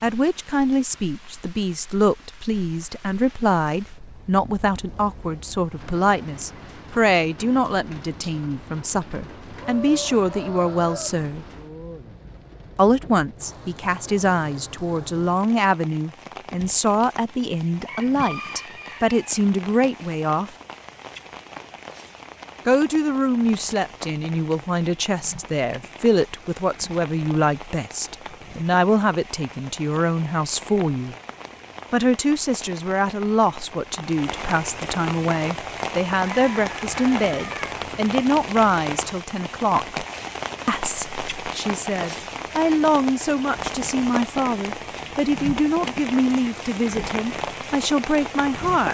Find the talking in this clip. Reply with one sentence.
The talking can be heard from 0.0 to 11.4 s, from 12.8 to 20.5 s, from 22.6 to 31.1 s, from 31.9 to 40.0 s and from 40.6 to 48.8 s.